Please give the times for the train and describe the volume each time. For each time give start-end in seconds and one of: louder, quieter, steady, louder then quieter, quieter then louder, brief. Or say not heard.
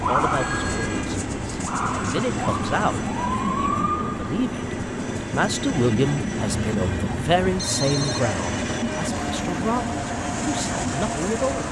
0.0-11.6 steady.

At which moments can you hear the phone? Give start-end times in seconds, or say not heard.
0.3-1.1, 7.5-8.2.